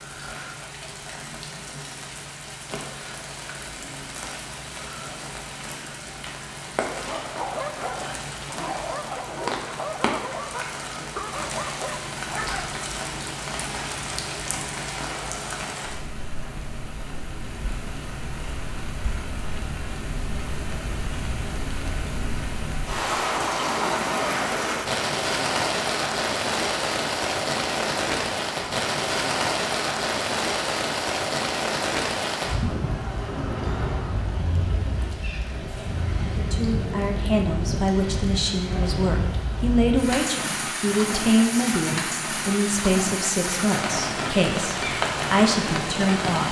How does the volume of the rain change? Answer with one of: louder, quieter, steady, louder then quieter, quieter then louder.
louder.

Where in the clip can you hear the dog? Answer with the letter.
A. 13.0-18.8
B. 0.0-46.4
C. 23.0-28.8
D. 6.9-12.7
D.